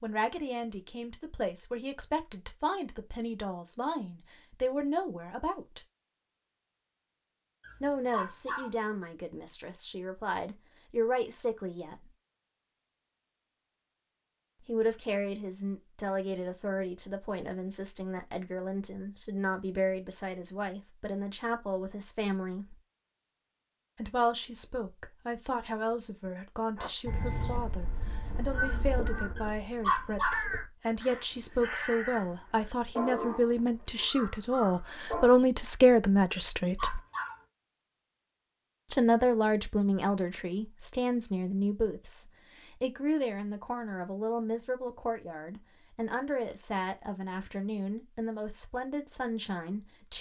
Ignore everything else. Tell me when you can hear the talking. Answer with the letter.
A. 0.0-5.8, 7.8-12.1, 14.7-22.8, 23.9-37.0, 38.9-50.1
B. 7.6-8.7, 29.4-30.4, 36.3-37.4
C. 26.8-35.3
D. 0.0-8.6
A.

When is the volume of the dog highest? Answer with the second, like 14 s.
30 s.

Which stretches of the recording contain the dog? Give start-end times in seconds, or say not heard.
7.6-8.7, 29.4-30.4, 36.3-37.4.